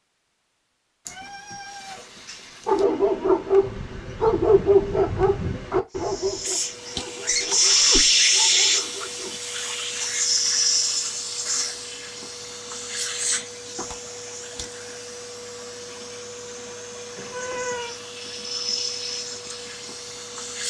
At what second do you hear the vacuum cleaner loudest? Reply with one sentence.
The volume of the vacuum cleaner peaks at 8 seconds.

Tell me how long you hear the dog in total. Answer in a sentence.
You can hear the dog for 7 seconds altogether.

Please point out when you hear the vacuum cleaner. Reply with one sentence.
You can hear the vacuum cleaner from 5.9 to 20.6 s.